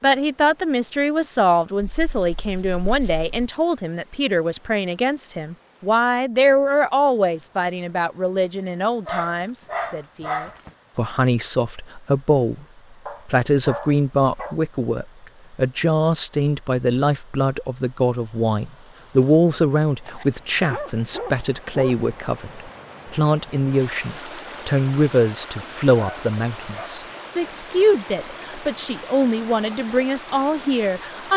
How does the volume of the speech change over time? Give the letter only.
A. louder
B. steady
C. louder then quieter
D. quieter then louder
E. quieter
B.